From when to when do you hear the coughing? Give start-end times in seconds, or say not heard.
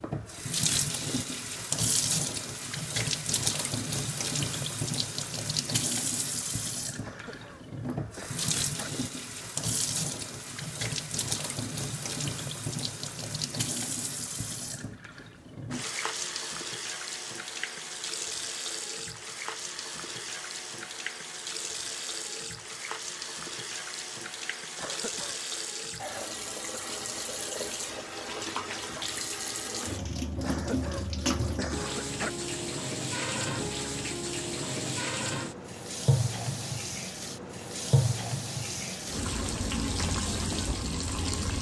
7.0-8.9, 24.8-25.4, 30.4-32.3.